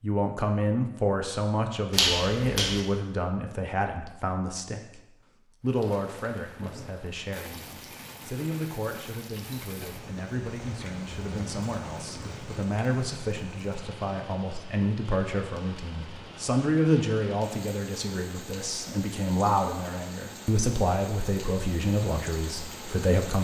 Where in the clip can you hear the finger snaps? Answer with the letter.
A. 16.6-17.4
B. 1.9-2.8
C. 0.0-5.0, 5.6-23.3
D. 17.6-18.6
B.